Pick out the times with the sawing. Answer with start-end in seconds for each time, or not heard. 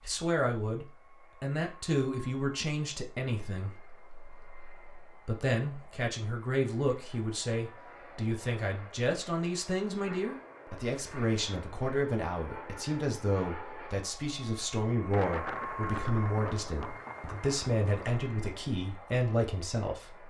not heard.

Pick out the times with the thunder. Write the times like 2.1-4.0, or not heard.
15.1-18.2.